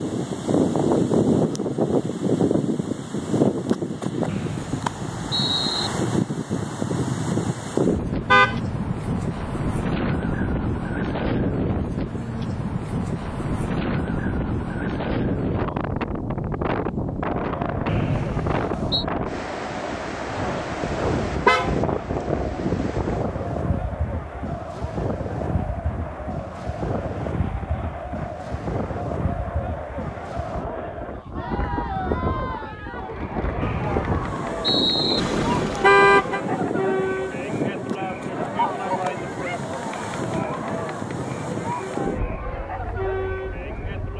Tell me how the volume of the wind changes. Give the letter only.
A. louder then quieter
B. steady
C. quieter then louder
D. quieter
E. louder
D.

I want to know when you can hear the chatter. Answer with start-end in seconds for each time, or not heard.
17.4-44.1.